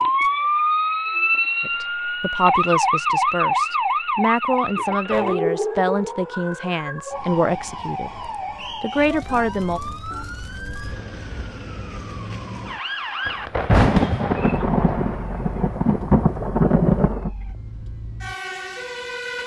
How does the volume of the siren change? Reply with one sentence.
The loudness of the siren goes down.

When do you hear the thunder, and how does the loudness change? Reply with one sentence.
You can hear the thunder from 13.2 to 17.3 s, getting quieter then louder.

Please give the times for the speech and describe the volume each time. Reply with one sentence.
You can hear the speech from 1.6 to 9.8 s, at a steady volume.